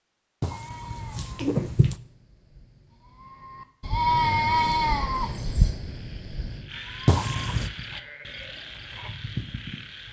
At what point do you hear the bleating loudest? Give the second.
4 s.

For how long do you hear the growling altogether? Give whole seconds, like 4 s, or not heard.
2 s.